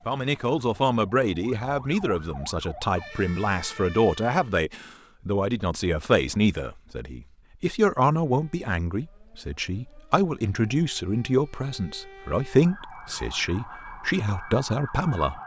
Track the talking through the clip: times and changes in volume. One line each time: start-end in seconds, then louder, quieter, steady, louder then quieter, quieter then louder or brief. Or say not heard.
0.1-15.4 steady.